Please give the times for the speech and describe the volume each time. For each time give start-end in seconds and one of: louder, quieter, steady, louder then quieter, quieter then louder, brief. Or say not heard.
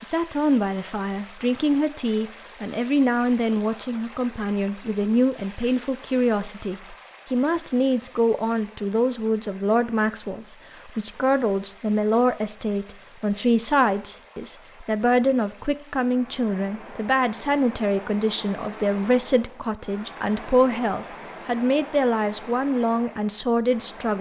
0.0-24.1 steady.